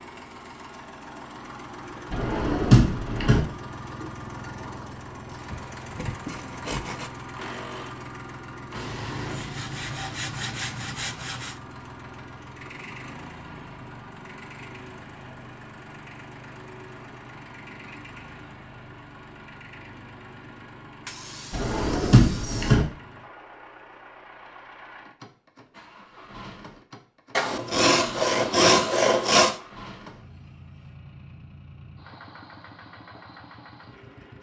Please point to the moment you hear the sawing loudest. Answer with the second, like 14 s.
29 s.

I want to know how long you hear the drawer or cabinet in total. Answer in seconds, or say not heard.
3 s.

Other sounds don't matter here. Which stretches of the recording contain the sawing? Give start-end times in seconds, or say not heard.
5.5-7.1, 8.8-11.6, 21.1-22.8, 27.4-29.6.